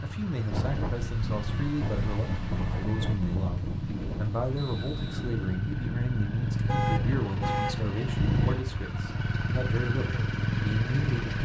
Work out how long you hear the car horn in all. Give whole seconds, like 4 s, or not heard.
3 s.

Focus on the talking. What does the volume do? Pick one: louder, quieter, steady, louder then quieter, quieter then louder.
steady.